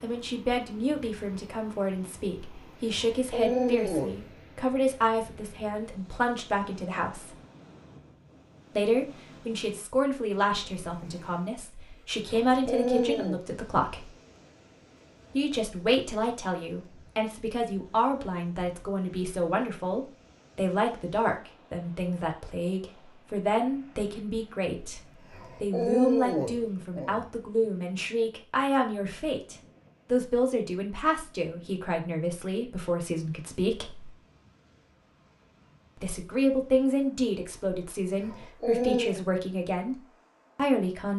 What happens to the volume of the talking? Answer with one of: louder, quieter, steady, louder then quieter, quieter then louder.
steady.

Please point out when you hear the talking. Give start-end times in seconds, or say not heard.
0.0-7.3, 8.7-14.1, 15.3-25.0, 25.6-34.1, 36.0-41.1.